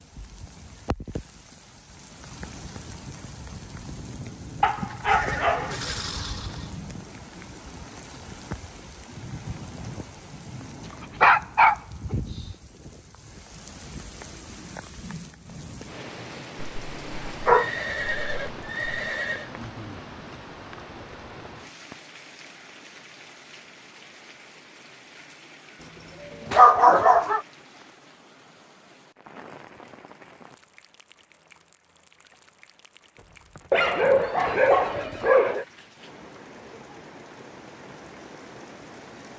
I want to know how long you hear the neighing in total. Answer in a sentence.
The neighing can be heard for 6 seconds in total.